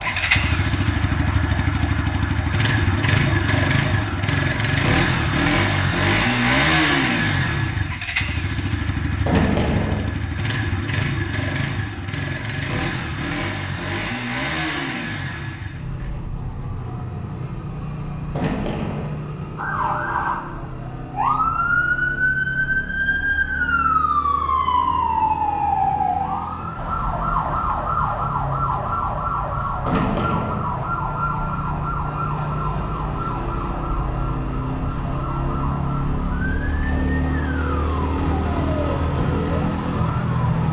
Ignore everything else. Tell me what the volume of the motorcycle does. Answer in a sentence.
The loudness of the motorcycle goes down, then up.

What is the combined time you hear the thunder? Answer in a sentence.
The thunder can be heard for 2 seconds in total.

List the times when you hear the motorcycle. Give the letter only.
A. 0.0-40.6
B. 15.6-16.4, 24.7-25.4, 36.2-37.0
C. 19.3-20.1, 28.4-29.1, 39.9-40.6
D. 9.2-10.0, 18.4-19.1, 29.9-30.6
A.